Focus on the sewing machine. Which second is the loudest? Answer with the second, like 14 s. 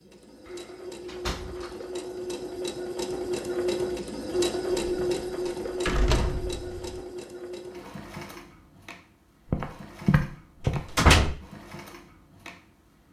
5 s.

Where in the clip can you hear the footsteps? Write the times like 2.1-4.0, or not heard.
9.5-10.8.